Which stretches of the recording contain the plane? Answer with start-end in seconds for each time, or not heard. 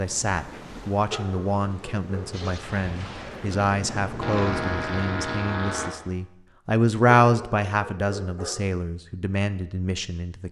4.2-5.9.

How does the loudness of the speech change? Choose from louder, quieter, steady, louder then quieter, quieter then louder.
louder then quieter.